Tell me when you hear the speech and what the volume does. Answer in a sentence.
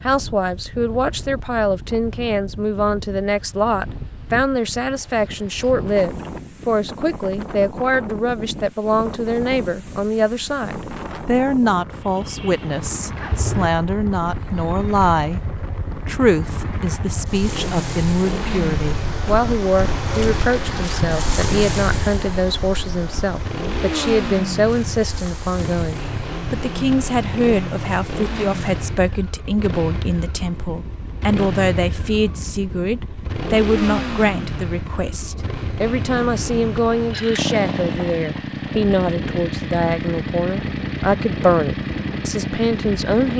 The speech can be heard from 0.0 to 43.3 s, at a steady volume.